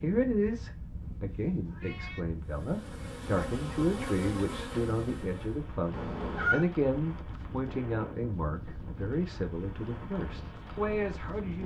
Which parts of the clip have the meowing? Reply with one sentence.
The meowing can be heard from 1.6 to 2.2 s and from 5.9 to 6.7 s.